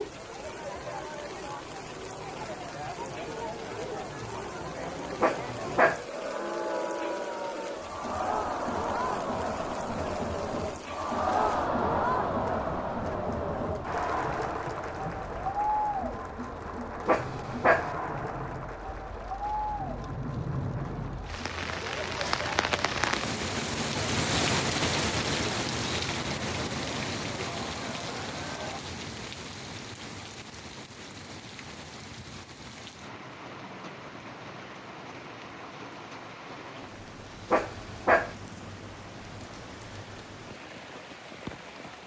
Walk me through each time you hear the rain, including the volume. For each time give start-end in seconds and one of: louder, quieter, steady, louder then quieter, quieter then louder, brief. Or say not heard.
0.0-42.0 louder then quieter.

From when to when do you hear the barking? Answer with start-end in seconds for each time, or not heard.
5.2-6.0, 17.1-17.9, 37.5-38.4.